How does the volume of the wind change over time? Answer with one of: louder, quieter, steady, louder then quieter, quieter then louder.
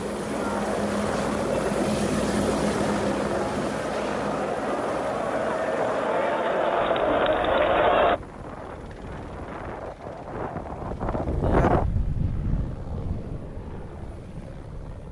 louder then quieter.